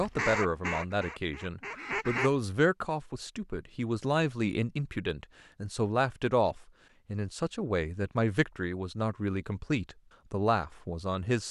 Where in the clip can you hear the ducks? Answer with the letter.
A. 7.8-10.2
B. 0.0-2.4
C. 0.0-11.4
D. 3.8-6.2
B.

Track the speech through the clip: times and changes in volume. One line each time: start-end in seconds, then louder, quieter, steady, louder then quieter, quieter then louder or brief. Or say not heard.
0.0-11.4 steady.